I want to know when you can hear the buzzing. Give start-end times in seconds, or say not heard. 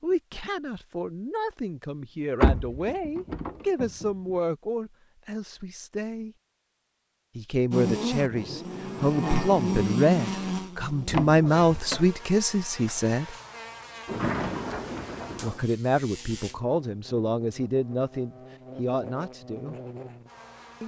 7.7-20.8.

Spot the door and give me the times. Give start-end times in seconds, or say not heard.
2.4-4.0, 11.1-12.1, 14.1-15.7.